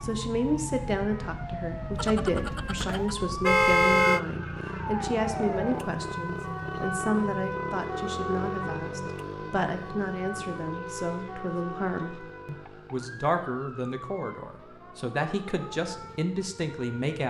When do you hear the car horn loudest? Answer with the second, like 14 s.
4 s.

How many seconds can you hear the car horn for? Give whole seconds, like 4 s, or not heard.
2 s.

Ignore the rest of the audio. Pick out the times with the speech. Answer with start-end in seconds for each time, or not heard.
0.0-17.2.